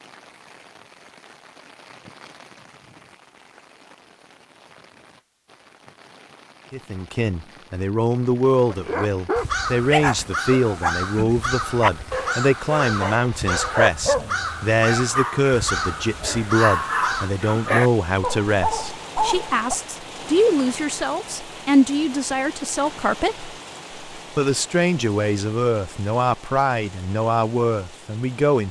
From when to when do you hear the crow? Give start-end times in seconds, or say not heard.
9.3-17.3.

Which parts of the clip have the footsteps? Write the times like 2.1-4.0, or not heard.
not heard.